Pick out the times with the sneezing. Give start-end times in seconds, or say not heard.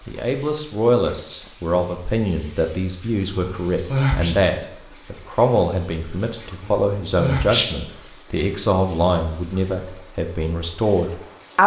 3.3-4.3, 6.6-7.7.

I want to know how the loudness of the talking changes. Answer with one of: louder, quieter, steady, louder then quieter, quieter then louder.
steady.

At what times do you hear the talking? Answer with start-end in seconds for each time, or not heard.
0.1-11.6.